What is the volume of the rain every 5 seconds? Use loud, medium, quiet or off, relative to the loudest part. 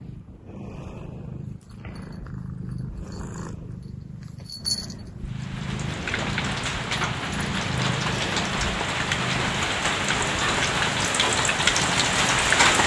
off, medium, loud.